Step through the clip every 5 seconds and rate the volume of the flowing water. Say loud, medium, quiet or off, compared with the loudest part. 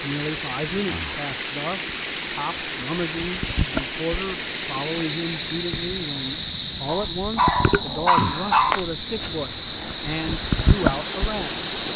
loud, medium, loud.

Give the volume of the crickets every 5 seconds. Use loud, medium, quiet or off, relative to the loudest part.
medium, loud, loud.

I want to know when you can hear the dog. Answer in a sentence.
The dog can be heard from 6.8 to 8.8 s.